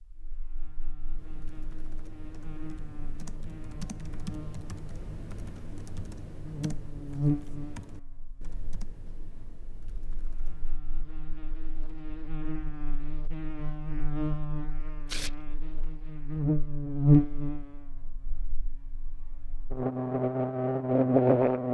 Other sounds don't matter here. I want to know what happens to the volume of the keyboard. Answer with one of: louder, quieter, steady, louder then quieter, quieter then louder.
louder then quieter.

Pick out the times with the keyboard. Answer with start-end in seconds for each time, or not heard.
1.1-10.8.